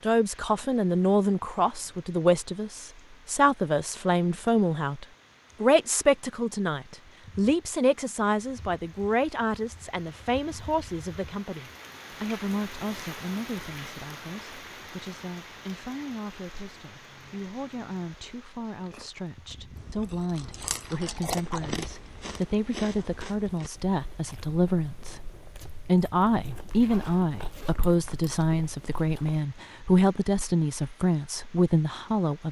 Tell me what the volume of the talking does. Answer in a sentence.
The loudness of the talking goes down, then up.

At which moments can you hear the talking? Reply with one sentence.
You can hear the talking from 0.0 to 32.4 s.